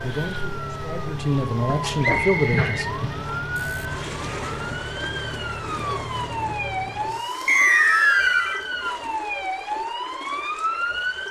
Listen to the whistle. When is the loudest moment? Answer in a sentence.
The volume of the whistle peaks at 8 seconds.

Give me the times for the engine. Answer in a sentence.
The engine can be heard from 0.0 to 7.3 s.